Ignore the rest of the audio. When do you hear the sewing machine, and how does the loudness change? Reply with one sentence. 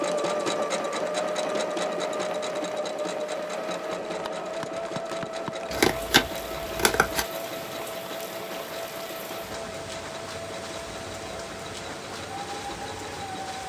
The sewing machine can be heard from 0.0 to 13.6 s, getting quieter.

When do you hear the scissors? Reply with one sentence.
You can hear the scissors from 5.7 to 7.2 s.